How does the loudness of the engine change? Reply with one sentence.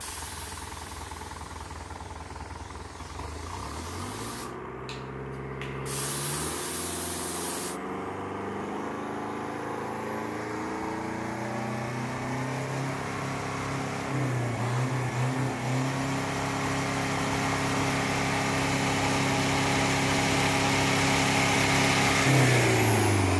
The loudness of the engine goes up.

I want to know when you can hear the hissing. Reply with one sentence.
The hissing can be heard from 0.0 to 7.8 s.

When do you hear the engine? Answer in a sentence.
The engine can be heard from 0.0 to 23.3 s.